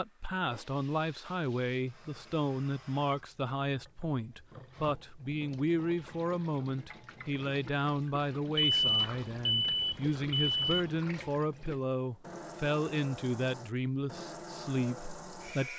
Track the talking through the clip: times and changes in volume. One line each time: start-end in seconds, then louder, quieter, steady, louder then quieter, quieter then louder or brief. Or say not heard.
0.0-15.7 steady.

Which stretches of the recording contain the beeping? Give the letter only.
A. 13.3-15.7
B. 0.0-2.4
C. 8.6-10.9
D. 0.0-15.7
C.